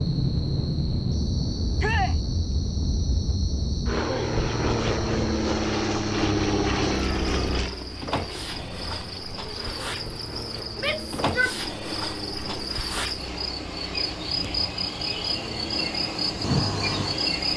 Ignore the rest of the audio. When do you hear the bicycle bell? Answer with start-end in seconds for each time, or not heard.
not heard.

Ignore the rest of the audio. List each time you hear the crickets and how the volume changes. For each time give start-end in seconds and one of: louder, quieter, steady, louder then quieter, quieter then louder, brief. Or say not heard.
0.0-17.5 louder.